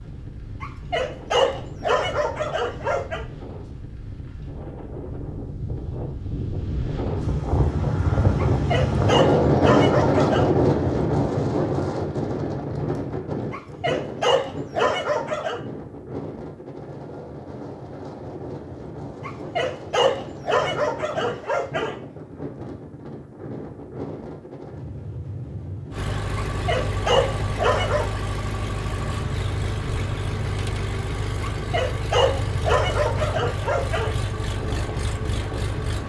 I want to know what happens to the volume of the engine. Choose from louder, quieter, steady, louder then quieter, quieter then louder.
steady.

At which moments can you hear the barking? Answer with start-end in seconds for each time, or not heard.
0.6-3.2, 8.3-10.4, 13.5-15.6, 19.2-21.9, 26.4-28.1, 31.4-34.1.